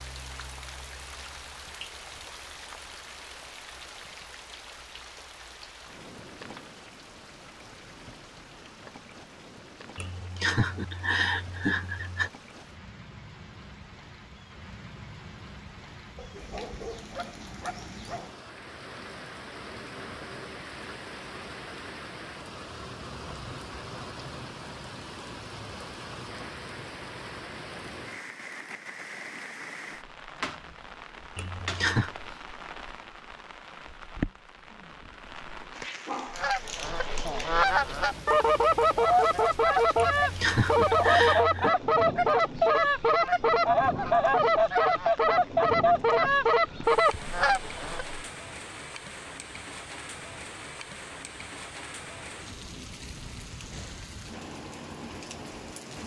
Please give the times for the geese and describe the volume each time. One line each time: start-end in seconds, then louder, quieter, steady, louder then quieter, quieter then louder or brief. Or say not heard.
36.3-48.2 steady.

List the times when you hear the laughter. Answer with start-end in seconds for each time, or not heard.
9.9-12.3, 31.4-32.1, 40.0-41.8.